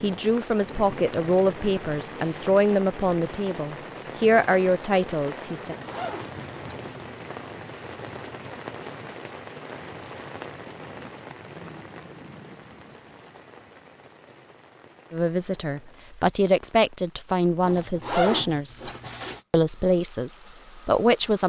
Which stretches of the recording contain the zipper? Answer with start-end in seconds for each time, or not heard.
5.7-6.8, 17.6-19.4.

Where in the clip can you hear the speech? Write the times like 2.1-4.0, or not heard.
0.0-5.8, 15.1-18.9, 19.5-21.4.